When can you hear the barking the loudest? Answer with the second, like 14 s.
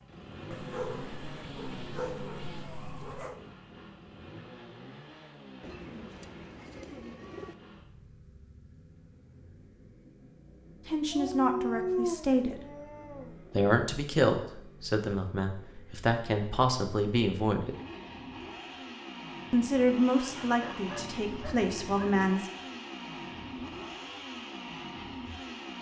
12 s.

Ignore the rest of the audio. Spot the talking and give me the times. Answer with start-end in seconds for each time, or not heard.
10.8-12.6, 13.6-17.8, 19.5-22.5.